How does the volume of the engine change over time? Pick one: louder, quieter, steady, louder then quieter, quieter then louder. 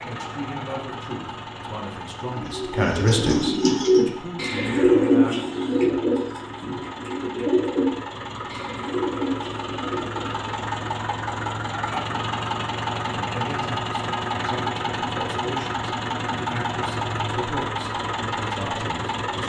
louder.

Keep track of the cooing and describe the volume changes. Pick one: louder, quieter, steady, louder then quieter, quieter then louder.
quieter.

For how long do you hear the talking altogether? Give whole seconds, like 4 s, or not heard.
12 s.